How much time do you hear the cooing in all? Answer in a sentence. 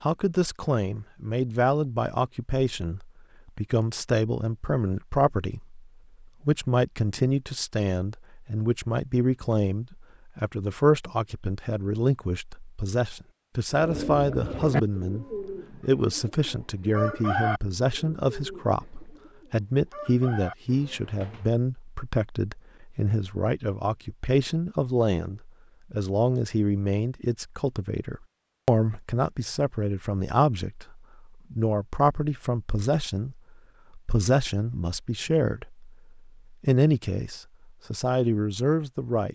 You can hear the cooing for 8 seconds altogether.